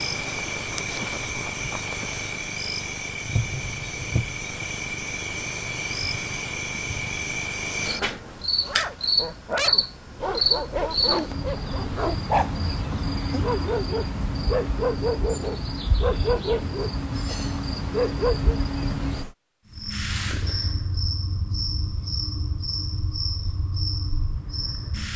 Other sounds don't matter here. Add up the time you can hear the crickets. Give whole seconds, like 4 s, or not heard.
25 s.